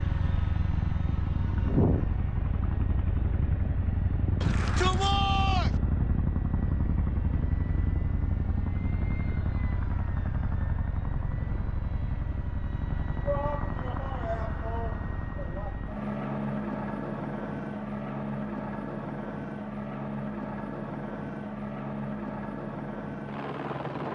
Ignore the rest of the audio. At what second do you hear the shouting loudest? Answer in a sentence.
The loudest moment of the shouting is at 5 seconds.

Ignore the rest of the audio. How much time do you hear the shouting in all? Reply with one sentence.
You can hear the shouting for 4 seconds altogether.